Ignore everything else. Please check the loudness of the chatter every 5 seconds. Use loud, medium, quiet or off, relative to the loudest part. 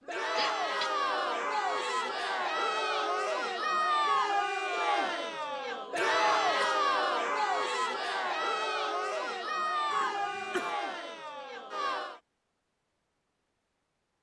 loud, loud, medium.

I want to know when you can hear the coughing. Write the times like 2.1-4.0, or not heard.
0.3-0.9, 6.0-6.7, 9.9-10.8.